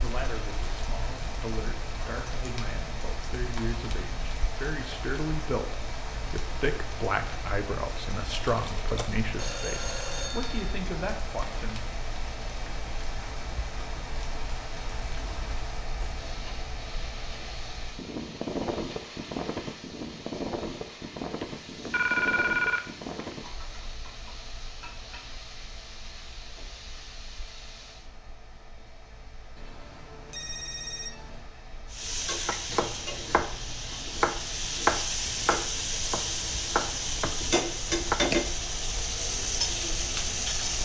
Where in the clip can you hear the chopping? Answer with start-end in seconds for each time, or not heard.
32.5-38.5.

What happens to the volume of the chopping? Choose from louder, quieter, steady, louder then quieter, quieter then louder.
louder then quieter.